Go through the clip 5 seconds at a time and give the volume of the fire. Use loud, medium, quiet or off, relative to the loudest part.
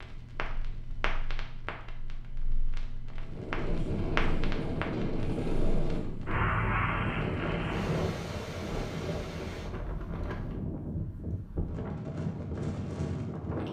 medium, loud, off.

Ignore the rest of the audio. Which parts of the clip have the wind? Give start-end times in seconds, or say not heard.
3.2-13.6.